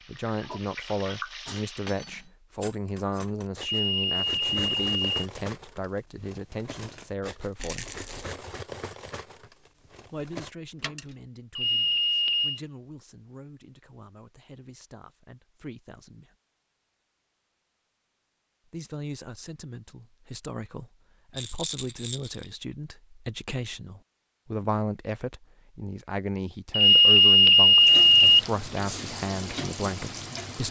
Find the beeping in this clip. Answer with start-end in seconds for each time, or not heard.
3.6-5.2, 11.6-12.6, 26.7-28.4.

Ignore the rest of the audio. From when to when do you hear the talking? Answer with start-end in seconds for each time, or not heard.
0.1-7.9, 10.1-16.4, 18.6-30.6.